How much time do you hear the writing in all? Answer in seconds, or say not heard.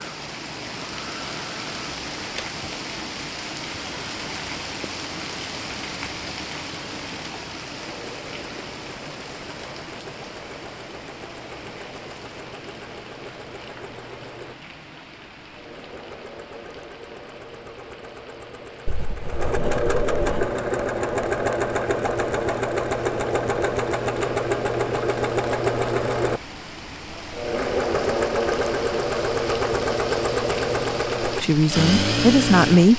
2 s.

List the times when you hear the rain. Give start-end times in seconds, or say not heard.
0.0-32.9.